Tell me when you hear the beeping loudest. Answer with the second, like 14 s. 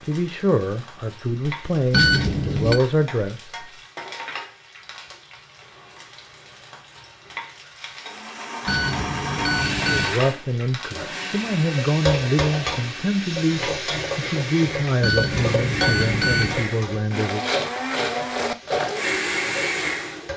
2 s.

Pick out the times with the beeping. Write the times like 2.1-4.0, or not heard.
1.9-2.8, 8.7-10.2, 15.0-16.6.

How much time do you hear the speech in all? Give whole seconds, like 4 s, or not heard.
11 s.